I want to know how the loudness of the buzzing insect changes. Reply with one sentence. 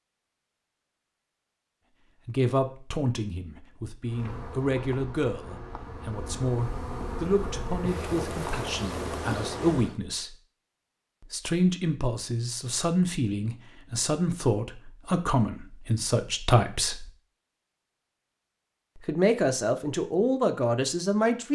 The volume of the buzzing insect goes up.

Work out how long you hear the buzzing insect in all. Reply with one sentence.
The buzzing insect can be heard for 6 seconds in total.